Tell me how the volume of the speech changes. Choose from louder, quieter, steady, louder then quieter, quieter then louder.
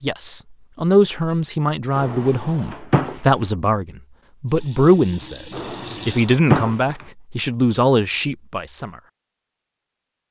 steady.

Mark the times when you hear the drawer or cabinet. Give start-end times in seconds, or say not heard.
1.9-3.5, 5.5-7.0.